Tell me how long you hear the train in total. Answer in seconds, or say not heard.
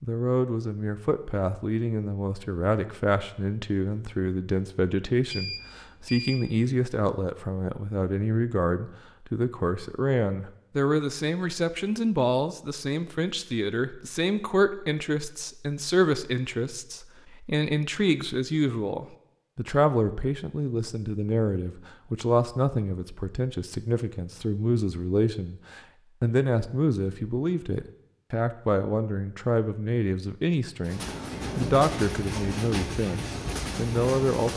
4 s.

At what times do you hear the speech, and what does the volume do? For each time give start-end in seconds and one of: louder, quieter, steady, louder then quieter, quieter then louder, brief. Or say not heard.
0.0-34.5 steady.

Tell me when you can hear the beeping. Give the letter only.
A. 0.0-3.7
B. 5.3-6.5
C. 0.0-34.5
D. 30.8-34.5
B.